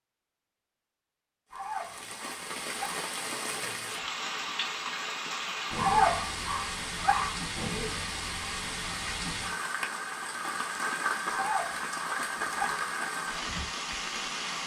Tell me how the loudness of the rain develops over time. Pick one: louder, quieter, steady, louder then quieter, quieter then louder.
steady.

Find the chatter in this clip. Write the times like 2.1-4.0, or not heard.
not heard.